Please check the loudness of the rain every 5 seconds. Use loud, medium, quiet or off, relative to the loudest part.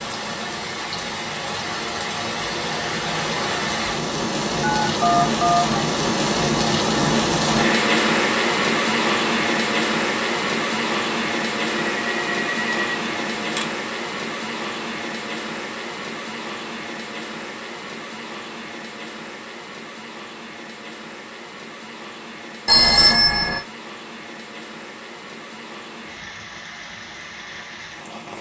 medium, loud, medium, quiet, quiet, quiet.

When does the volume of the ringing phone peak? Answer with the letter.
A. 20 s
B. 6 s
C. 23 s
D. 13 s
C.